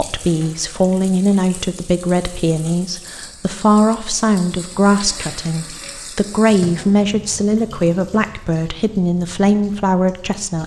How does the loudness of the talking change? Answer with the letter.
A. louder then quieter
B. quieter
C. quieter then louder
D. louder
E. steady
E.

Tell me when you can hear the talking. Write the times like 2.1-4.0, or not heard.
0.0-10.6.